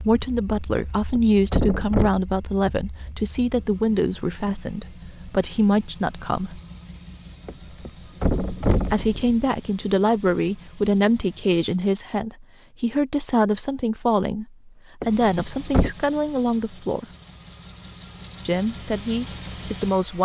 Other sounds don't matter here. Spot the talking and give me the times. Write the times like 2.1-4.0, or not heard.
0.0-6.6, 8.9-17.1, 18.4-20.1.